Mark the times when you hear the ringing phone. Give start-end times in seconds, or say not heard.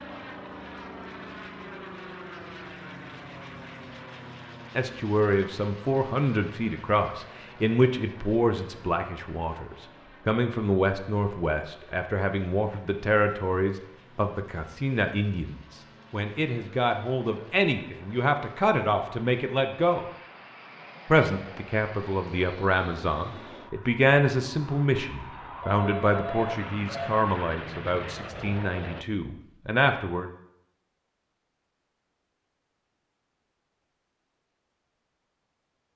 25.6-27.1.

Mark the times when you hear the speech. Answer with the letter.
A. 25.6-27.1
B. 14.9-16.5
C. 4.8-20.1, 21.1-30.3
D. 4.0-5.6
C.